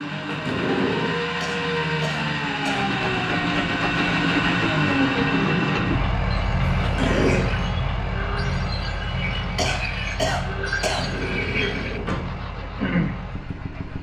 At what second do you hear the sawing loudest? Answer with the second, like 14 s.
13 s.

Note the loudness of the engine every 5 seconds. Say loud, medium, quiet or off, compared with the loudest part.
loud, loud, medium.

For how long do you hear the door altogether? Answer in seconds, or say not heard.
3 s.